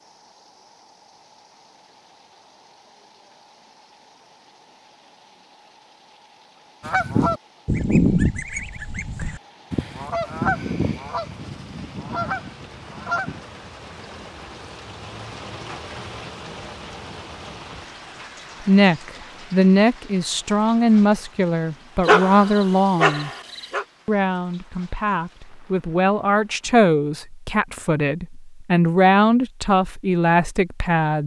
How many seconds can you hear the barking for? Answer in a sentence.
You can hear the barking for 2 seconds altogether.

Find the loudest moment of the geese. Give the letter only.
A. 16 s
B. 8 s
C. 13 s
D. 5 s
B.